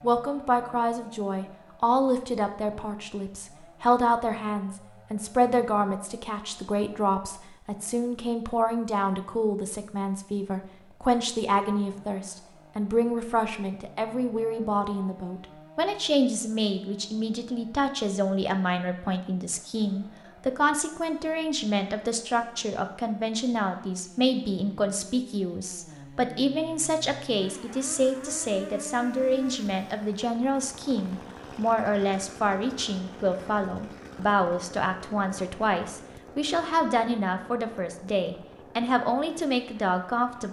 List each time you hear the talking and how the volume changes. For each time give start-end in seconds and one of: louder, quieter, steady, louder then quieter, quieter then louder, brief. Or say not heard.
0.0-40.4 steady.